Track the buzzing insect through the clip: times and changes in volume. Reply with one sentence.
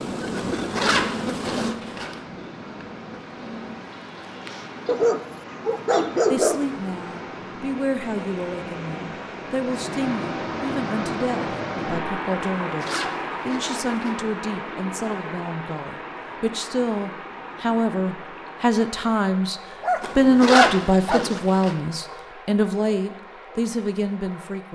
You can hear the buzzing insect from 0.0 to 5.1 s, getting quieter.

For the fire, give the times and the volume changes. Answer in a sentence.
You can't hear the fire here.